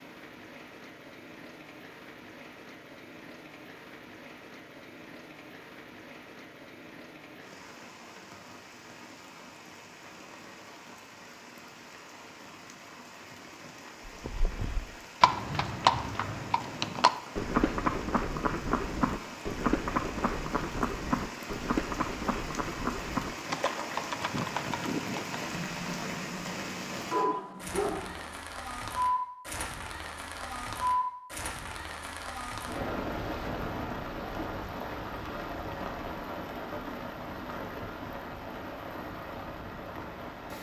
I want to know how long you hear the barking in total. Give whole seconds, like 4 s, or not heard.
3 s.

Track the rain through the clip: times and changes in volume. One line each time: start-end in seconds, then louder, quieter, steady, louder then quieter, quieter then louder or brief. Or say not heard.
0.0-40.5 louder.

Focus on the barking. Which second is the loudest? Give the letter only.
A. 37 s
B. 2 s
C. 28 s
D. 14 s
C.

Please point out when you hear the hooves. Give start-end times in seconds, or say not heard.
14.1-25.6.